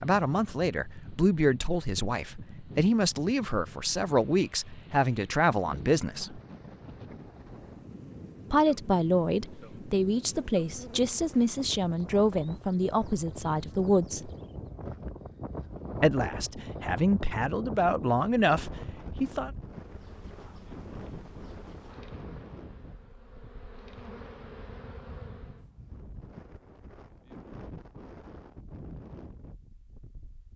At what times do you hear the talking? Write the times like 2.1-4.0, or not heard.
0.0-6.4, 8.5-14.3, 16.0-19.5.